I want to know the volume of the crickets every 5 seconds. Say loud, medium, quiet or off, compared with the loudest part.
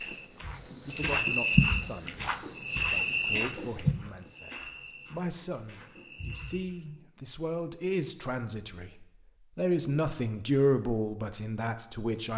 loud, quiet, off.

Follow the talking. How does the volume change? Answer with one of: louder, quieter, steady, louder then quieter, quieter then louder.
louder.